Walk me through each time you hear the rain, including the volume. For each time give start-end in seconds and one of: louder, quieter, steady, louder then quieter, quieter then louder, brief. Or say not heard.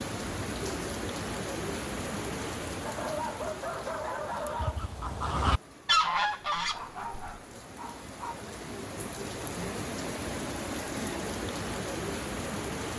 0.0-12.9 quieter then louder.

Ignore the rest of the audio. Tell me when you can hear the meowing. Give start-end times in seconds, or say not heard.
not heard.